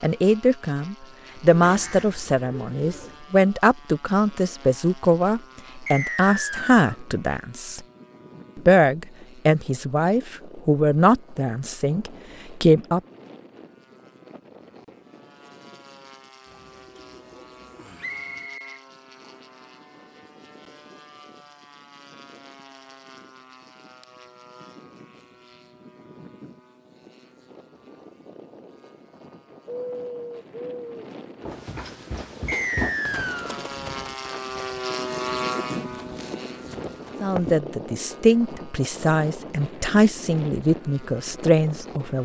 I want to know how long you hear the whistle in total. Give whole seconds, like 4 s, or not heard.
3 s.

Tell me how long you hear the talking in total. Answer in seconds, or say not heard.
17 s.